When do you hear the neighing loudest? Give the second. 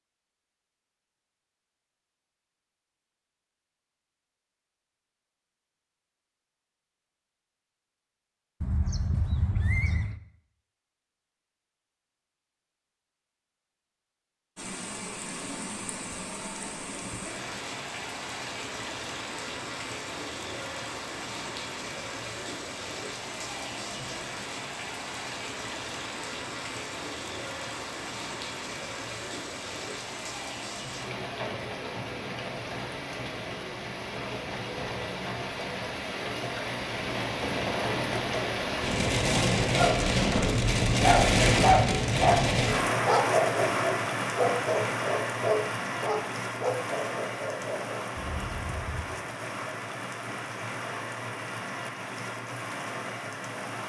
10 s.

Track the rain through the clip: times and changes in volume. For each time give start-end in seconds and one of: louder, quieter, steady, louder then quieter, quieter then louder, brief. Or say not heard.
14.6-53.8 louder then quieter.